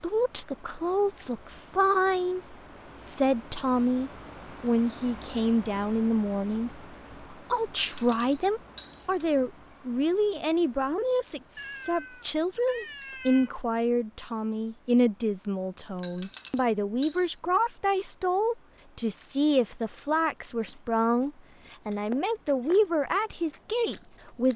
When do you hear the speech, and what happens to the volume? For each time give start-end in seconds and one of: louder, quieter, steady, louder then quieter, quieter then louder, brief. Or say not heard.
0.0-24.5 steady.